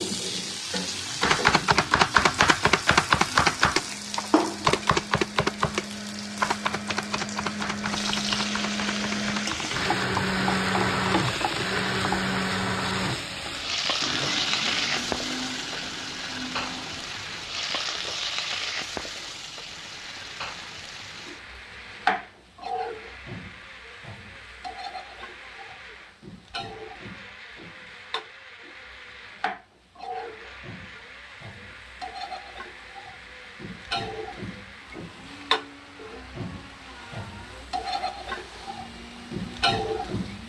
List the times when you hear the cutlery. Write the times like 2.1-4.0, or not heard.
not heard.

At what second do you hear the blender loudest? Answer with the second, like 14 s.
11 s.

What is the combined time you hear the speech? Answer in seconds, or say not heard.
not heard.